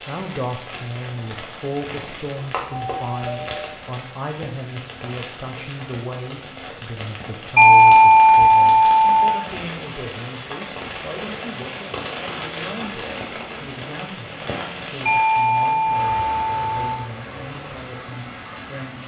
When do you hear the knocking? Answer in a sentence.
The knocking can't be heard in this clip.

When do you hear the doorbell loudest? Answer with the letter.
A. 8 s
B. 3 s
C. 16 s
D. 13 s
A.